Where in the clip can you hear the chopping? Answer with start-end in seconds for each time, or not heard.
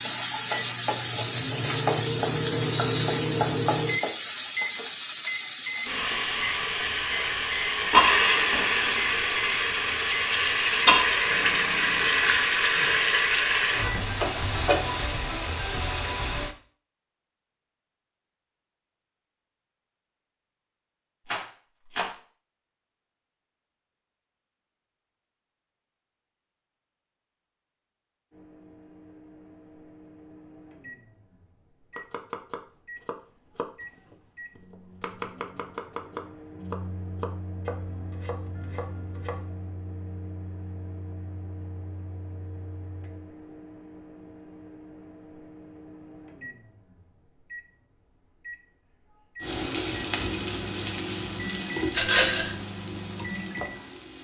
31.9-39.6.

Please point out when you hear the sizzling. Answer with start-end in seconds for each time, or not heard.
0.0-16.6, 49.4-54.1.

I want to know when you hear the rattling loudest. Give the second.
52 s.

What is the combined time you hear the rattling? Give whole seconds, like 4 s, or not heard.
2 s.